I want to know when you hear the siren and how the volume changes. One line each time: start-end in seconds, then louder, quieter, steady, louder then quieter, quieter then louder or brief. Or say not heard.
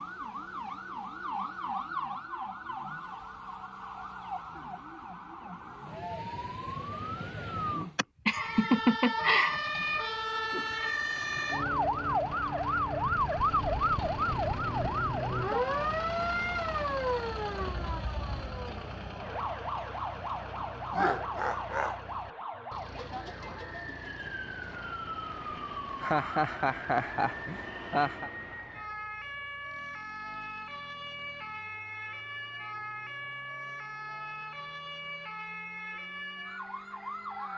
0.0-37.5 louder then quieter.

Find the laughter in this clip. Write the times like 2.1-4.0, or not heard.
8.0-9.8, 20.9-22.0, 26.0-28.3.